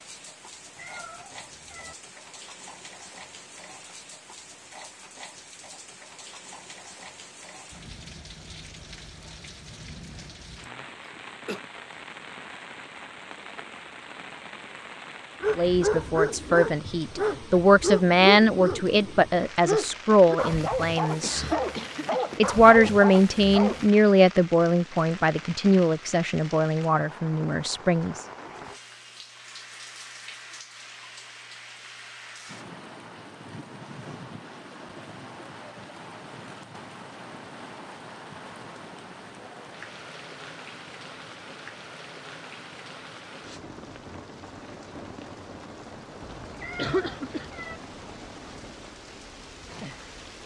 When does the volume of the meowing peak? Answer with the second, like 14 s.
47 s.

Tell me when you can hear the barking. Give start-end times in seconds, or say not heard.
15.4-23.9.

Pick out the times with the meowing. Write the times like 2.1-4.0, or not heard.
0.8-1.9, 46.5-47.8.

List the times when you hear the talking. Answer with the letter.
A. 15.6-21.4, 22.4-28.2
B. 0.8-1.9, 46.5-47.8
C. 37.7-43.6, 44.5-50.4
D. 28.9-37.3
A.